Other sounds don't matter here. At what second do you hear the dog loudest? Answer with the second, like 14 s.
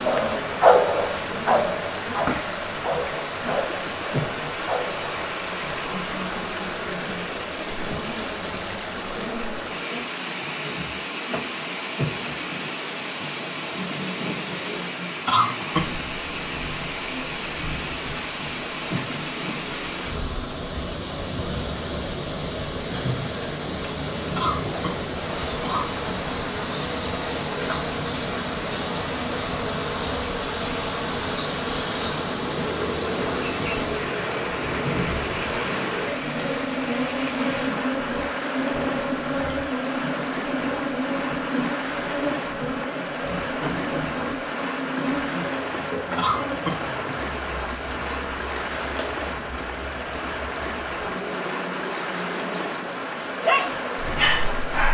1 s.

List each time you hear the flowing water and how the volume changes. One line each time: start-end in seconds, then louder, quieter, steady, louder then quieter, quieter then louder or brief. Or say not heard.
0.0-54.8 steady.